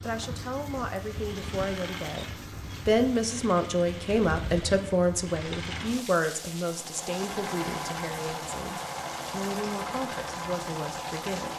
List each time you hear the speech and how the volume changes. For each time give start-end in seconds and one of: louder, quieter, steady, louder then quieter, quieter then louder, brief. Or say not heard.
0.0-2.2 brief
2.9-11.5 quieter.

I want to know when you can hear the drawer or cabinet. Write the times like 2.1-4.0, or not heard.
not heard.